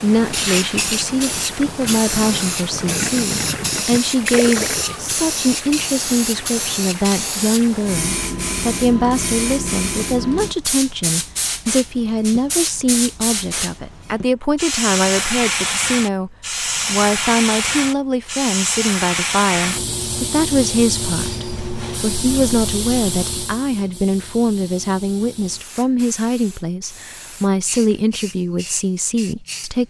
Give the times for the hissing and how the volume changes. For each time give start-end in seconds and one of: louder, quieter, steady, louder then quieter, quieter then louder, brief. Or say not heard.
0.0-29.8 quieter.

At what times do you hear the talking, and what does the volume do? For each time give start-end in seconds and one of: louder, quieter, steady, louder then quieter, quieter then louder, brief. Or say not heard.
0.0-29.8 steady.